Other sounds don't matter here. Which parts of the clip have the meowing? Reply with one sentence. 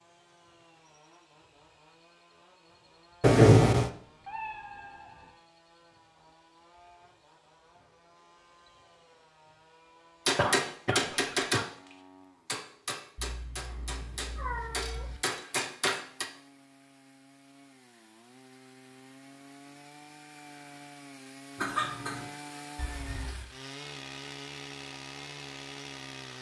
The meowing can be heard from 3.9 to 5.3 s, from 13.2 to 15.2 s and from 22.8 to 23.5 s.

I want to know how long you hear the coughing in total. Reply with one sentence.
The coughing can be heard for 3 seconds in total.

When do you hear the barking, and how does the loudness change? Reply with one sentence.
You can't hear the barking here.